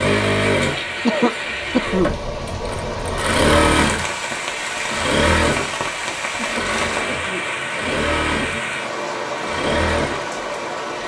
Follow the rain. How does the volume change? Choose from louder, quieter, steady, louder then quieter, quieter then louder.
steady.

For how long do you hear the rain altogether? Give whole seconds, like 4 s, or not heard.
11 s.